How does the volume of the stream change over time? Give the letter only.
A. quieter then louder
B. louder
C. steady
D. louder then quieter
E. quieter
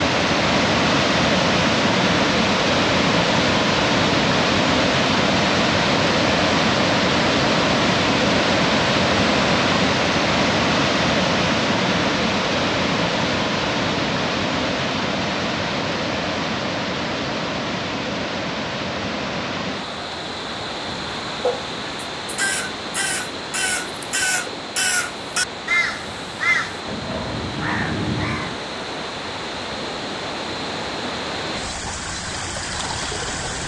E.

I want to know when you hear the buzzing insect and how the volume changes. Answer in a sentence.
You can't hear the buzzing insect here.